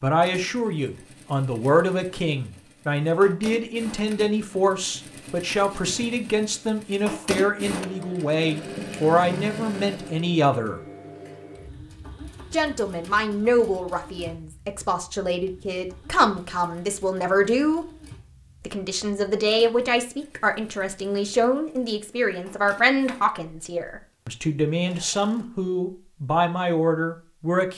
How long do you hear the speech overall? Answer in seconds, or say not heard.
25 s.